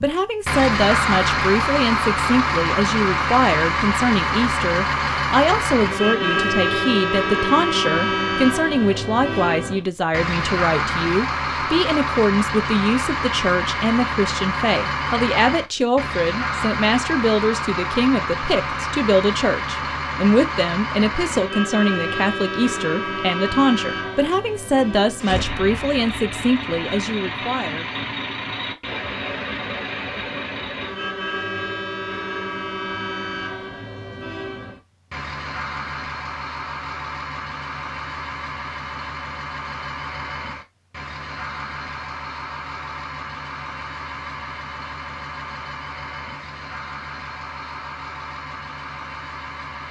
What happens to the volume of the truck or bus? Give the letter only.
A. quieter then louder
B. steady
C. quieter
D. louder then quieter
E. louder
C.